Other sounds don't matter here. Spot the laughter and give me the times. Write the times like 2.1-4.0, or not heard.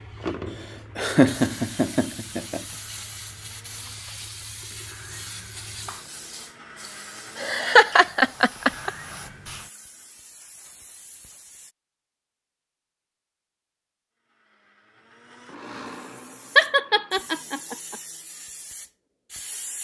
0.9-2.6, 7.3-8.9, 16.6-17.9.